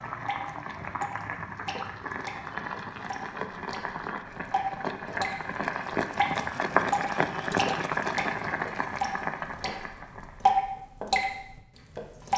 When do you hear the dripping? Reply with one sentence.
The dripping can be heard from 0.2 to 5.3 s and from 6.2 to 12.3 s.